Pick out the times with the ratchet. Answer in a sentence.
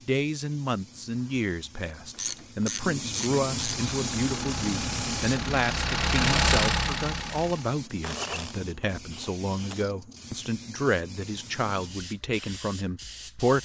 You can hear the ratchet from 2.1 to 3.8 s and from 8.0 to 9.9 s.